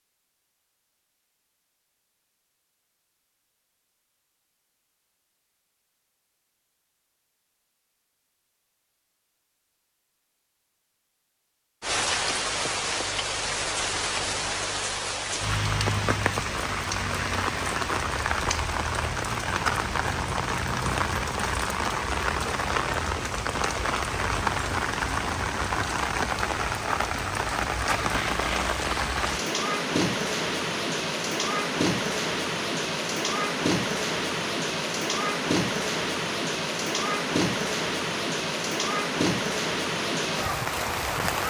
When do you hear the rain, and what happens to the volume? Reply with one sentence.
The rain can be heard from 11.8 to 41.4 s, at a steady volume.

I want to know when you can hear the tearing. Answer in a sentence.
You can hear the tearing from 28.0 to 29.4 s.